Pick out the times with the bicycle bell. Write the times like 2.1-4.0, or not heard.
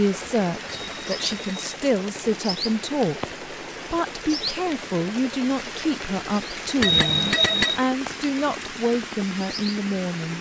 0.7-1.8, 6.8-7.8.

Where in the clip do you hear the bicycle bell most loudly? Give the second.
7 s.